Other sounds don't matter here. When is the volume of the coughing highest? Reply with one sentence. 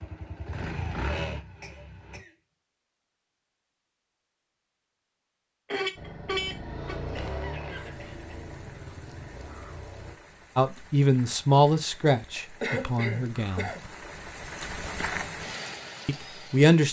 The volume of the coughing peaks at 13 seconds.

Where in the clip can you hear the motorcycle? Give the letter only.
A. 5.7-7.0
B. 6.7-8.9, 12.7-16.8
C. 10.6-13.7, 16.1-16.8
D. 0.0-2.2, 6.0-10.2
D.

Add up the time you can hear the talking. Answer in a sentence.
You can hear the talking for 4 seconds altogether.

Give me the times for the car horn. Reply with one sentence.
You can hear the car horn from 5.7 to 7.0 s.